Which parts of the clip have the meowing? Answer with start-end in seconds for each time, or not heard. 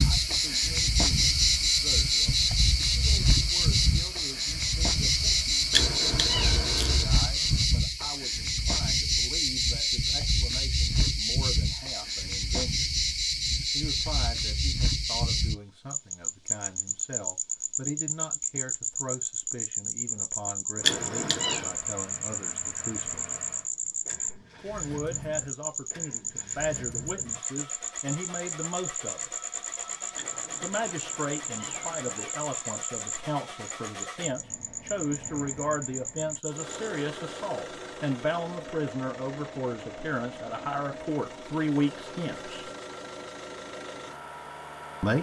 5.7-7.1, 20.8-21.8, 30.1-32.4.